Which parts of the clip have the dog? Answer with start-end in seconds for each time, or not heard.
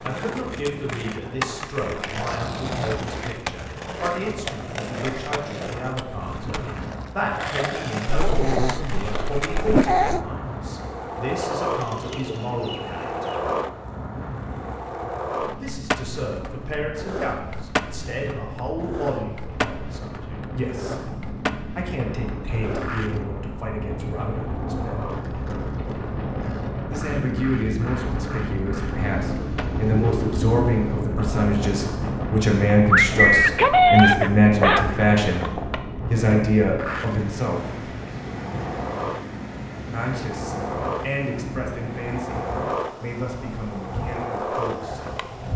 8.1-10.2, 32.9-35.1.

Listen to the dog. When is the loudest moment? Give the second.
34 s.